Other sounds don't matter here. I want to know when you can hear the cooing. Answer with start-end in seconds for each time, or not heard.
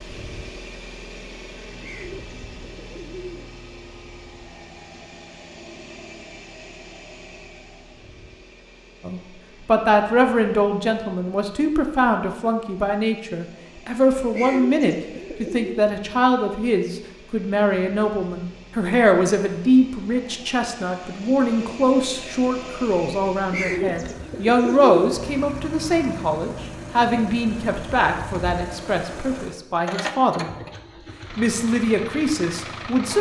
1.8-3.5, 14.3-15.8, 23.5-24.9.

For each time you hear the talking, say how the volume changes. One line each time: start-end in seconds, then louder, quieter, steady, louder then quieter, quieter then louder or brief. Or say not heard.
9.1-30.5 steady
31.3-33.1 brief.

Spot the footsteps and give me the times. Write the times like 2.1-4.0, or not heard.
not heard.